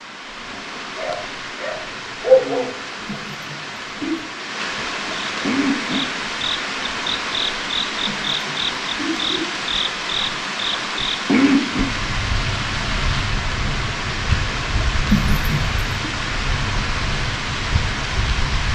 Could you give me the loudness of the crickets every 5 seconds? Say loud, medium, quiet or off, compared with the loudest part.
off, loud, loud, medium.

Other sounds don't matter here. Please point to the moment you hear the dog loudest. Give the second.
2 s.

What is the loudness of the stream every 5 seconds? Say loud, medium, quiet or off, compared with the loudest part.
medium, loud, loud, loud.